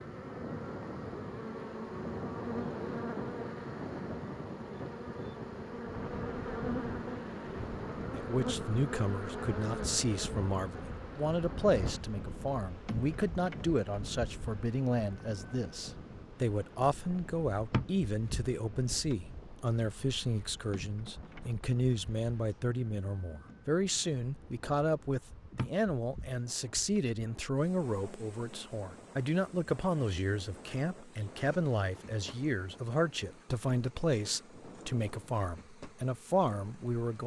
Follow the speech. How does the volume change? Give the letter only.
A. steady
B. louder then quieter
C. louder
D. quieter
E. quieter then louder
A.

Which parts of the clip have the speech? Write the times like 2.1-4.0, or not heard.
8.2-37.2.